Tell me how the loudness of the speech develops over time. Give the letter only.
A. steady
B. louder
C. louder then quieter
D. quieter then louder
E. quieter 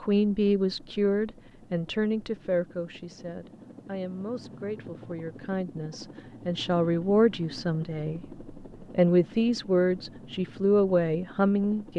D.